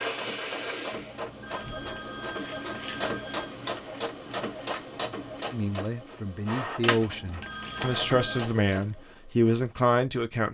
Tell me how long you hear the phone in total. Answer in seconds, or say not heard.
4 s.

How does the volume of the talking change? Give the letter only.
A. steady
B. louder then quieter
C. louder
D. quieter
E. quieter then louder
C.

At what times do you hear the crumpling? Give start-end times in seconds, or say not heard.
2.2-3.1, 7.4-8.1.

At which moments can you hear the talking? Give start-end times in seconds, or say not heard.
5.5-10.4.